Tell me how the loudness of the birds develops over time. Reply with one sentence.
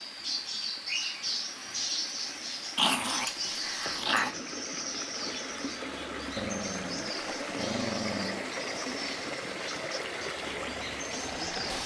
The loudness of the birds goes down.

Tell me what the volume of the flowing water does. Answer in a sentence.
The volume of the flowing water goes up.